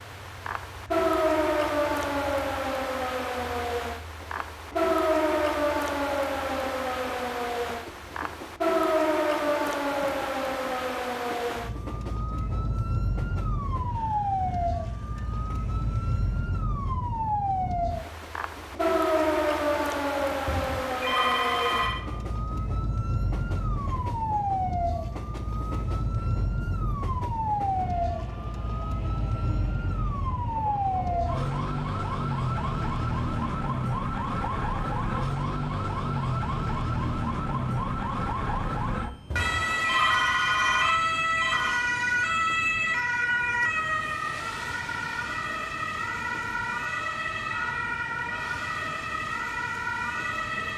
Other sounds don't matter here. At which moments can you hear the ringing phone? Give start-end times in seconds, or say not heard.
20.4-22.1, 39.3-41.9.